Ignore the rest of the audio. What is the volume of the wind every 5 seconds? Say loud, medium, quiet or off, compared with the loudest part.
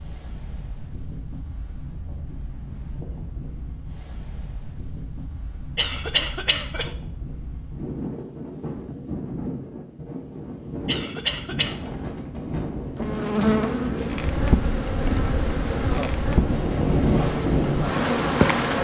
quiet, medium, medium, loud.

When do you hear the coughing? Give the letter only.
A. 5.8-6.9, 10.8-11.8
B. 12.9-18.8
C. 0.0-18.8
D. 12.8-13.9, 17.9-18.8
A.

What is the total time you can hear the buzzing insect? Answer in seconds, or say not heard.
6 s.